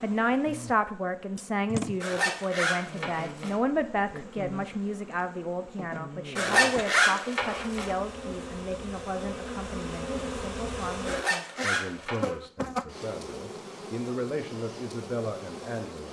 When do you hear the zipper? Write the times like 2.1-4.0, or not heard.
2.0-3.6, 6.3-8.0, 11.1-12.3.